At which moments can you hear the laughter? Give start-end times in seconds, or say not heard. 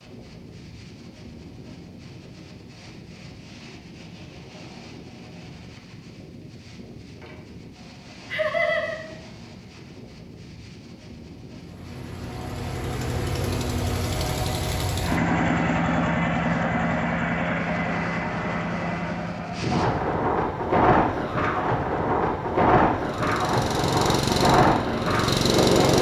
8.3-8.9.